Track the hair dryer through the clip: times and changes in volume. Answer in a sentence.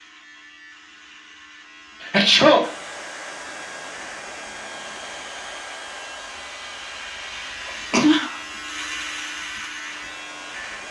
The hair dryer can be heard from 2.6 to 10.8 s, getting quieter.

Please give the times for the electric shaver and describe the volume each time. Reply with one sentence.
You can hear the electric shaver from 0.0 to 10.8 s, getting louder.